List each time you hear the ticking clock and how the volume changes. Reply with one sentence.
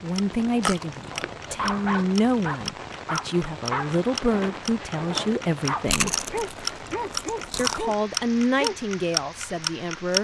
The ticking clock can be heard from 0.1 to 10.2 s, getting louder.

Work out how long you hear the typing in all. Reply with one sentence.
You can't hear the typing here.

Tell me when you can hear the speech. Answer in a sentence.
The speech can be heard from 0.0 to 6.2 s and from 7.5 to 10.2 s.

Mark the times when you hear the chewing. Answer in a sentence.
You can hear the chewing from 0.6 to 2.0 s and from 5.8 to 7.8 s.